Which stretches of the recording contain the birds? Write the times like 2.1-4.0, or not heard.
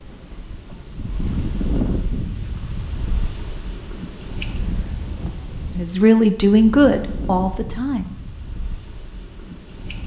not heard.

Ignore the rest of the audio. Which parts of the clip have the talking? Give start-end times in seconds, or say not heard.
5.8-8.2.